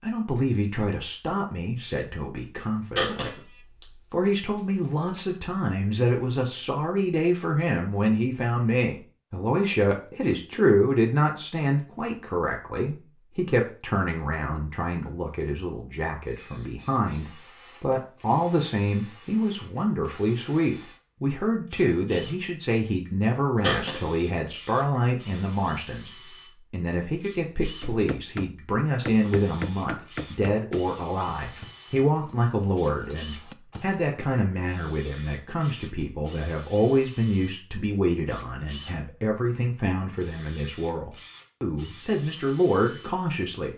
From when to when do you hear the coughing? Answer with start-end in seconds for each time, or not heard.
3.0-3.9, 23.6-24.6.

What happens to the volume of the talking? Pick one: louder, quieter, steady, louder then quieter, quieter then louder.
steady.